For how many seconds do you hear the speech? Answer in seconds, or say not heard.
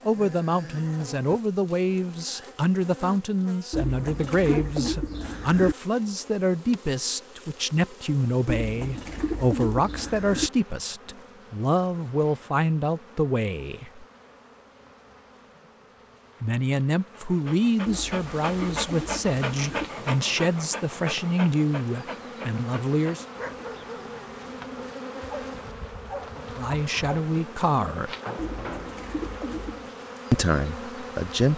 24 s.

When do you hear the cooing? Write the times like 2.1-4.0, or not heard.
3.7-5.8, 8.4-10.5, 17.9-19.9, 28.4-29.9.